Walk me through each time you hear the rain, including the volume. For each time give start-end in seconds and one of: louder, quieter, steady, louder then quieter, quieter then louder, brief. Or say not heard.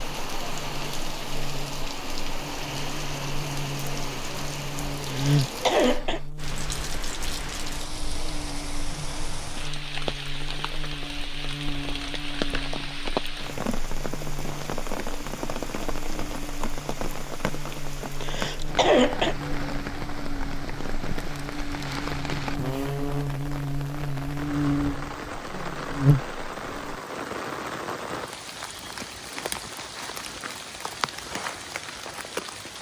0.0-32.7 steady.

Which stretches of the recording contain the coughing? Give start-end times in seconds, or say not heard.
5.0-6.2, 18.2-19.4.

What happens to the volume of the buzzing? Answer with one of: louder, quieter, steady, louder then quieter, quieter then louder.
quieter then louder.